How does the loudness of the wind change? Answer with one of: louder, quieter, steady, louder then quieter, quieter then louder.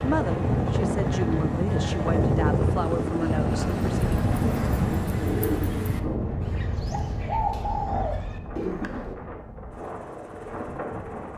quieter.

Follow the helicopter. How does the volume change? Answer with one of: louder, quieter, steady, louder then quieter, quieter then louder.
quieter.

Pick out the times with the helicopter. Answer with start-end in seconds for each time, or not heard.
0.0-11.3.